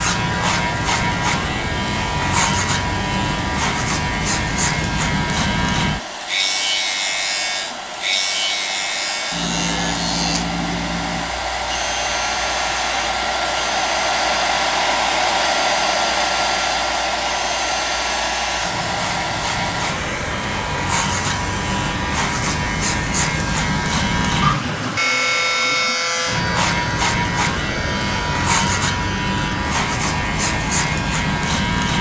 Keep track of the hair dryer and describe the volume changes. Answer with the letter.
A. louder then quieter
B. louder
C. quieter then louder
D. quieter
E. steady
A.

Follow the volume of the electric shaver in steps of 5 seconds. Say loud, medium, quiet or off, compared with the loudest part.
loud, loud, medium, medium, loud, loud, loud.